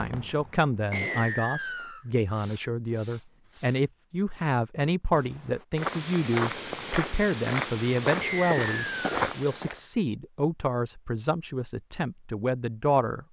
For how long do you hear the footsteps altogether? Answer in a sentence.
The footsteps can be heard for 4 seconds in total.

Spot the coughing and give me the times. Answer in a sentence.
The coughing can't be heard in this clip.